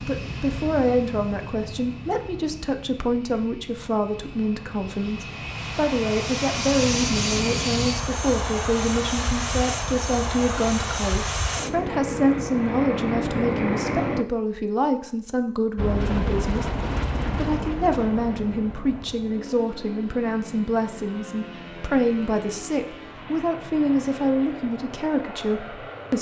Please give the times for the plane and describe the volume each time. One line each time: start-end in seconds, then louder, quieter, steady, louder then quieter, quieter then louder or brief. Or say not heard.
0.0-14.2 louder
15.8-26.1 quieter.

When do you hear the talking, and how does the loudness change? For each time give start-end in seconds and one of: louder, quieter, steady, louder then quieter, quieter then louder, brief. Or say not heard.
0.0-26.1 steady.